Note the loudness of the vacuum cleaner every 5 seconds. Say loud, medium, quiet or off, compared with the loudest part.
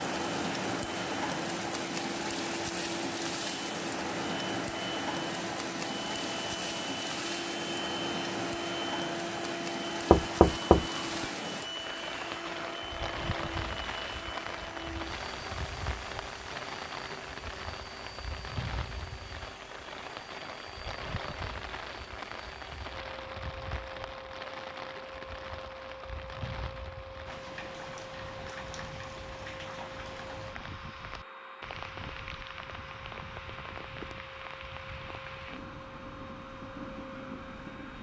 loud, loud, loud, medium, medium, medium, medium, medium.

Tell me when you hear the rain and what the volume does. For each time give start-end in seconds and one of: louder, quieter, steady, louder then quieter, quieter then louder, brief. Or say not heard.
0.0-37.9 quieter.